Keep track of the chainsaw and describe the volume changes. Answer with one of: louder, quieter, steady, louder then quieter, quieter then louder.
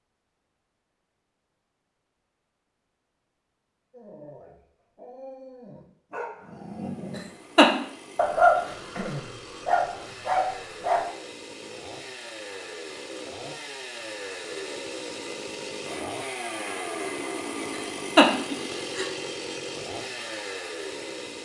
louder.